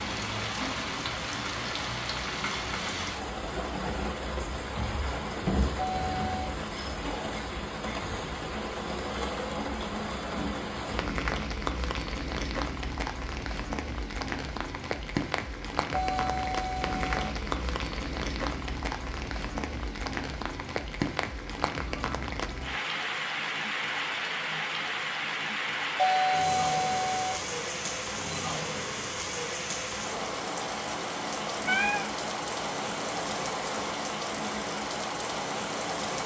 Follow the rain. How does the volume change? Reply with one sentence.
The loudness of the rain stays about the same.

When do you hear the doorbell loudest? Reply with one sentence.
The volume of the doorbell peaks at 26 seconds.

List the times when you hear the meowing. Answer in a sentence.
The meowing can be heard from 31.4 to 32.1 s.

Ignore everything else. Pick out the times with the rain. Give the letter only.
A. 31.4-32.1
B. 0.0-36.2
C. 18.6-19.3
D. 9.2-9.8
B.